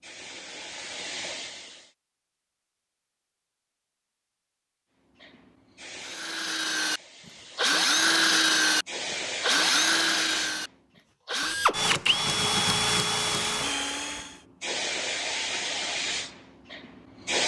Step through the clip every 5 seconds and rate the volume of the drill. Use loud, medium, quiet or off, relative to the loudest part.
off, loud, loud, off.